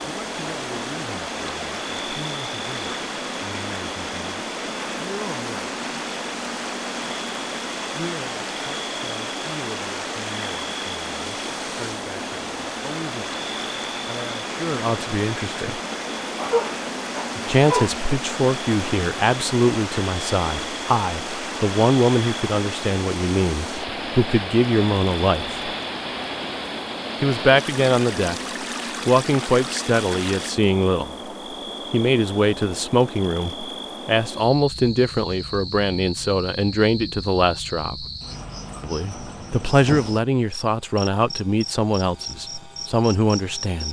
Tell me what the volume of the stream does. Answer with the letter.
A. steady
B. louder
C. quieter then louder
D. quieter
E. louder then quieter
A.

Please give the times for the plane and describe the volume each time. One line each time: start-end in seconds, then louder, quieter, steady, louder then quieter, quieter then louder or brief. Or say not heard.
not heard.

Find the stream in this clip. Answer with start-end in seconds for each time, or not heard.
0.0-30.6.